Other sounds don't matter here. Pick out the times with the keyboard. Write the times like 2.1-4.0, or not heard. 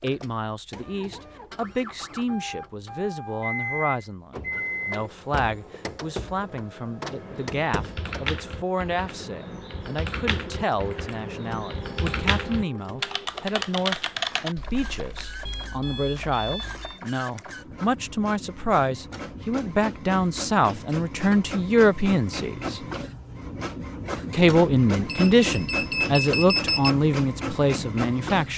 7.0-15.6.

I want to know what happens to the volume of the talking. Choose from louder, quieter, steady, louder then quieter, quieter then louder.
louder.